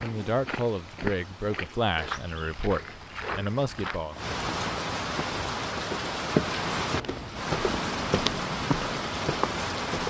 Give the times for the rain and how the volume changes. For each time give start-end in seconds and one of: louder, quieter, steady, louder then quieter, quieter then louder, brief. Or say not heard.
0.0-10.0 louder.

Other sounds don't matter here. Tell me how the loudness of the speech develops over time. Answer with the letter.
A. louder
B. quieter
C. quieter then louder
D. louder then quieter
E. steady
E.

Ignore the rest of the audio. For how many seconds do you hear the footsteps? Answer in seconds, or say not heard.
10 s.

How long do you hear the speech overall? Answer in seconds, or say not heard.
4 s.